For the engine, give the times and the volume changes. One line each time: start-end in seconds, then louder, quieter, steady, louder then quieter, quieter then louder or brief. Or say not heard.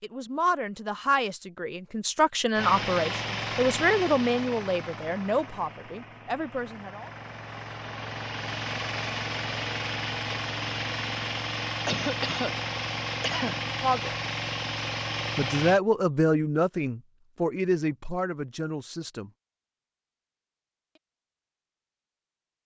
2.5-15.8 quieter then louder.